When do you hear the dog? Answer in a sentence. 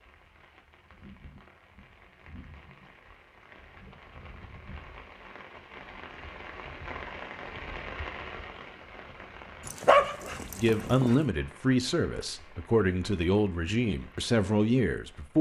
You can hear the dog from 9.7 to 11.2 s.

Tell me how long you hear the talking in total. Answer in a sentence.
You can hear the talking for 5 seconds altogether.